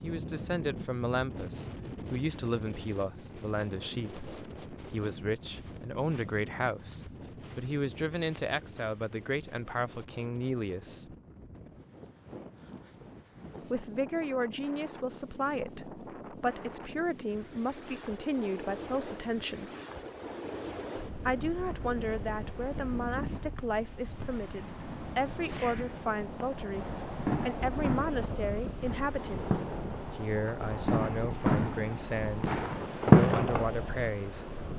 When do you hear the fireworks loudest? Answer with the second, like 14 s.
33 s.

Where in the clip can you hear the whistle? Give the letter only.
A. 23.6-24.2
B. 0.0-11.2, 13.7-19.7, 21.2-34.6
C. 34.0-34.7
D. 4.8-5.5
A.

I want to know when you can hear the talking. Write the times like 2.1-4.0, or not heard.
0.0-11.2, 13.7-19.7, 21.2-34.6.